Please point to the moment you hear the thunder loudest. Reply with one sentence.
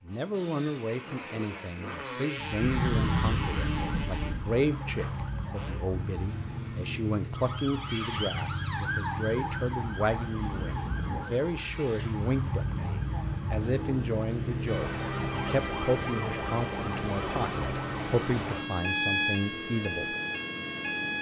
The loudest moment of the thunder is at 3 seconds.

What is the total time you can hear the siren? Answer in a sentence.
The siren can be heard for 19 seconds in total.